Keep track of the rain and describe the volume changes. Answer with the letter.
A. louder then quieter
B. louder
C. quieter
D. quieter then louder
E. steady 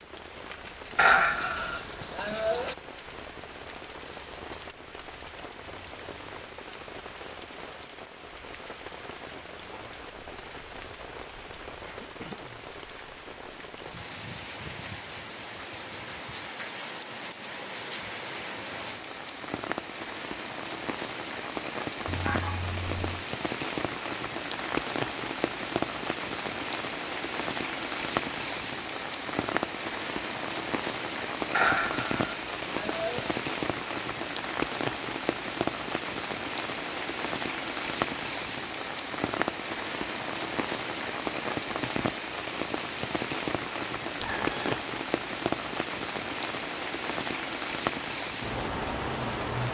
B.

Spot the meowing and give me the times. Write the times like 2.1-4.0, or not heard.
22.1-23.2, 44.1-44.9.